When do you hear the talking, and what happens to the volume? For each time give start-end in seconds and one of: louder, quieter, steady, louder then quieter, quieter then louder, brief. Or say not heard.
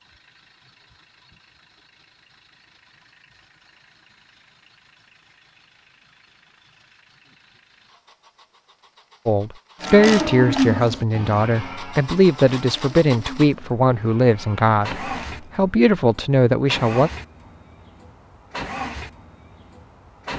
9.2-17.1 steady.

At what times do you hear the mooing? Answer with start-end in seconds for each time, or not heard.
9.8-15.5.